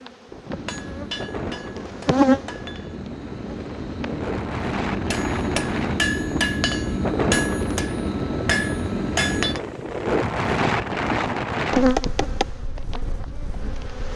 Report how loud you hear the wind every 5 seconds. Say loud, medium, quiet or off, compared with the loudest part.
medium, loud, loud.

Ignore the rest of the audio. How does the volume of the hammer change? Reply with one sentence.
The loudness of the hammer goes up.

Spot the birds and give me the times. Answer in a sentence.
The birds can't be heard in this clip.